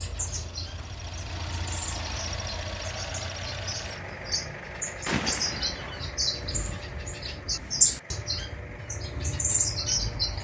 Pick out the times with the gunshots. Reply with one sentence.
The gunshots can be heard from 5.0 to 6.0 s.